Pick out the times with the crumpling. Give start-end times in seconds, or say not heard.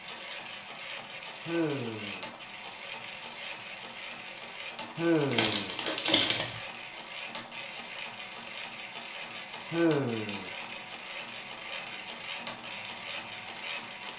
5.3-6.6.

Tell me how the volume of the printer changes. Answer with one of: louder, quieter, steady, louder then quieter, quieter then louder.
steady.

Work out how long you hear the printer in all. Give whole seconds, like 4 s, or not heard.
14 s.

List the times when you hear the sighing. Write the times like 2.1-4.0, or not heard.
1.4-2.2, 5.0-5.8, 9.7-10.5.